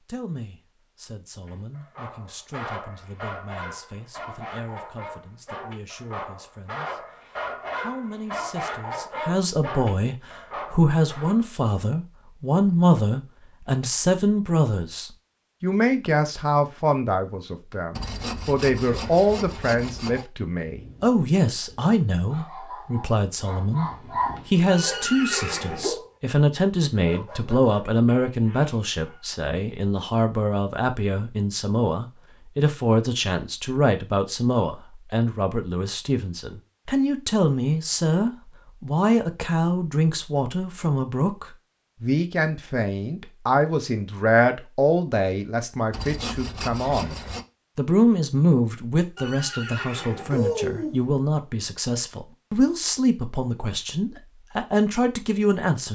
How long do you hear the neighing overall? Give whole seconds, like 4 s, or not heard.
3 s.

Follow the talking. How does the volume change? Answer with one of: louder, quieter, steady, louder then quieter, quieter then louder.
louder.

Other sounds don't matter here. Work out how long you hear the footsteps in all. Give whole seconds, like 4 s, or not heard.
not heard.